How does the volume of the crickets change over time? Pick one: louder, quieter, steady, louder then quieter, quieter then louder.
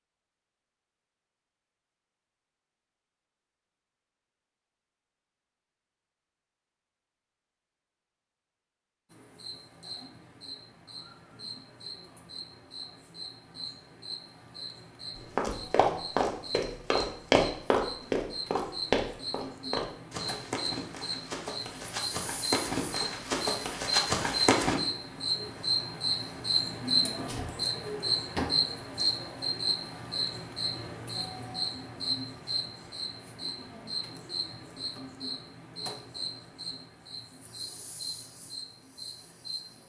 louder then quieter.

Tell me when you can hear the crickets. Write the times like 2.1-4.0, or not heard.
9.1-39.8.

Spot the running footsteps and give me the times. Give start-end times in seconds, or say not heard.
15.3-24.8.